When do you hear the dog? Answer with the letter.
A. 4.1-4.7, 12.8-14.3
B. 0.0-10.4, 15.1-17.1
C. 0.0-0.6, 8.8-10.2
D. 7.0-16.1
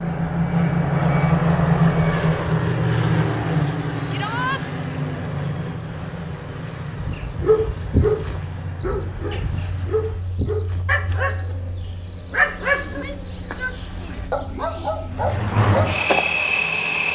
D.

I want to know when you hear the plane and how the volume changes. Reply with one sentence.
You can hear the plane from 0.0 to 10.4 s, getting quieter; and briefly from 15.1 to 17.1 s.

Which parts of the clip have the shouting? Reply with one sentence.
You can hear the shouting from 4.1 to 4.7 s and from 12.8 to 14.3 s.